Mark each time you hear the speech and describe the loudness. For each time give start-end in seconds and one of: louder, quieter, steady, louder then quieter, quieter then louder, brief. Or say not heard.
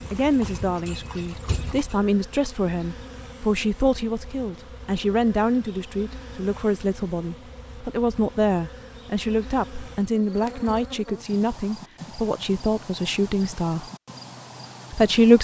0.1-13.9 steady
14.9-15.3 brief.